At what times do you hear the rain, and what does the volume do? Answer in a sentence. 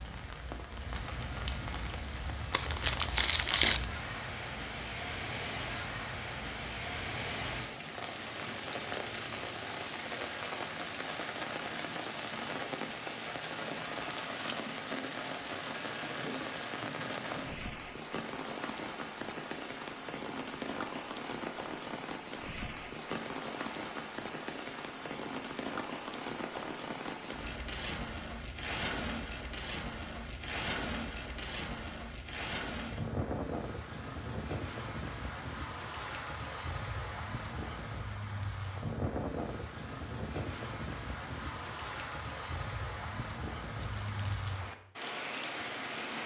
The rain can be heard from 0.0 to 46.2 s, at a steady volume.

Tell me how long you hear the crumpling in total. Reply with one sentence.
You can hear the crumpling for 2 seconds altogether.